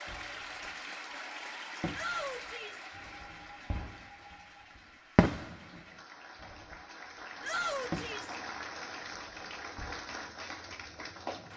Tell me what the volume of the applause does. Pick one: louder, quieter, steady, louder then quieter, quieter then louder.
quieter then louder.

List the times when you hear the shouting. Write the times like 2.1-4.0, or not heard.
1.9-2.9, 7.4-8.3.